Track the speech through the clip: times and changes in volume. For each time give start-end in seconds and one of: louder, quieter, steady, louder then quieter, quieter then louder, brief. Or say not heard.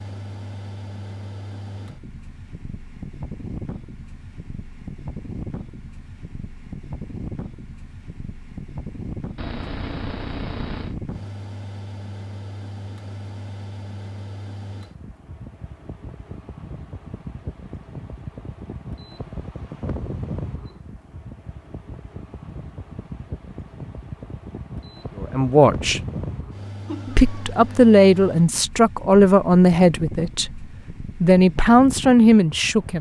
25.2-26.0 brief
27.1-32.9 steady.